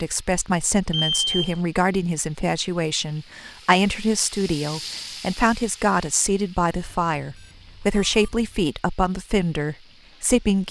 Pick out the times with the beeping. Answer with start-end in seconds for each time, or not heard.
0.9-1.6, 6.7-8.6.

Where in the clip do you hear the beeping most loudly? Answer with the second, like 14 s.
1 s.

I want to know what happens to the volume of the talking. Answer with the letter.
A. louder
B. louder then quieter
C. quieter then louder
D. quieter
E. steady
E.